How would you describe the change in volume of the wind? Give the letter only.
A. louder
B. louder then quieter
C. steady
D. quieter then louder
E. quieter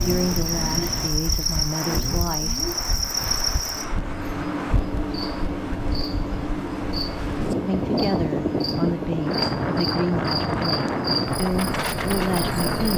A.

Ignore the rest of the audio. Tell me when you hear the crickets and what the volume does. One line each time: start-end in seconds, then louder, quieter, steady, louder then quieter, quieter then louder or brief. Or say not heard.
0.0-12.9 steady.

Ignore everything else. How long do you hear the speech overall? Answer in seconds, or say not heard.
8 s.